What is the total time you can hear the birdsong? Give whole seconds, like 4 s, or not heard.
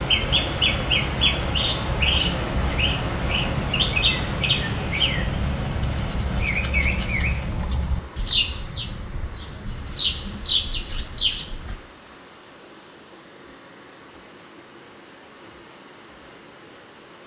12 s.